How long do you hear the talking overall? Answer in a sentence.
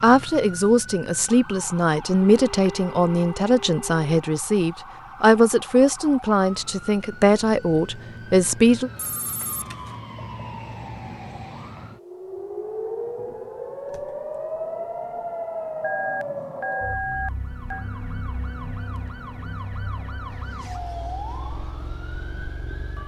The talking can be heard for 9 seconds in total.